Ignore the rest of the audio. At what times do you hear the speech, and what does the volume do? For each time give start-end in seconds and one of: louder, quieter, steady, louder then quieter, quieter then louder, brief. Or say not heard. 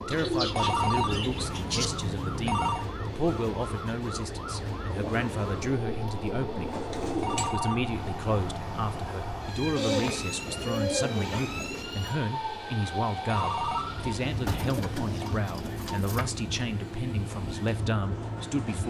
0.1-18.8 steady.